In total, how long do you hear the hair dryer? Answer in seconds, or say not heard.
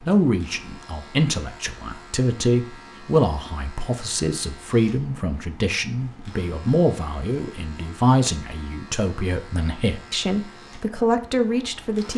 not heard.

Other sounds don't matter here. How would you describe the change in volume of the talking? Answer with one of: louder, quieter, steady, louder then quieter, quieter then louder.
steady.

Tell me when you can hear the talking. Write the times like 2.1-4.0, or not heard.
0.0-12.1.